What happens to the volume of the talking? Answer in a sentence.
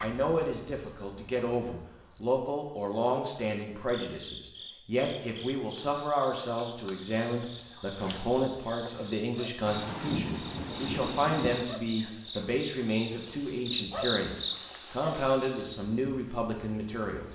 The volume of the talking stays about the same.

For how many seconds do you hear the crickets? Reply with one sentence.
You can hear the crickets for 17 seconds altogether.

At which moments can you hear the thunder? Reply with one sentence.
You can hear the thunder from 9.7 to 11.7 s.